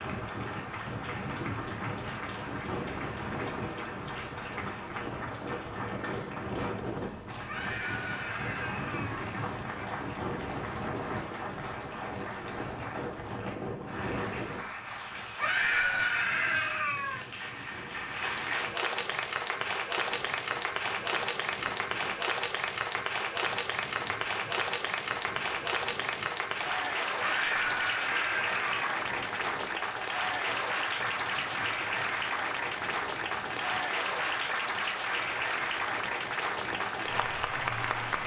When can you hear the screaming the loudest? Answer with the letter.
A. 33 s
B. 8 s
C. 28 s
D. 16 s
D.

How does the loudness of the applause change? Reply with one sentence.
The volume of the applause goes up.